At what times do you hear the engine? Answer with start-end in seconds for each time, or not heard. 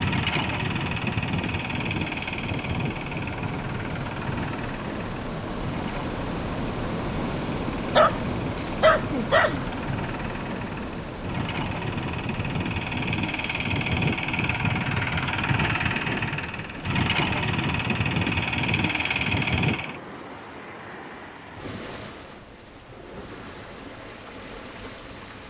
0.0-20.0.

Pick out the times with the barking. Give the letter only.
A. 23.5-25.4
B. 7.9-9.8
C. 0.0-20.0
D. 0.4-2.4
B.